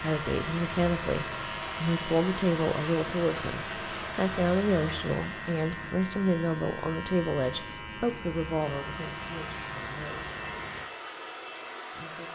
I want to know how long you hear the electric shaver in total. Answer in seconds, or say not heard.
11 s.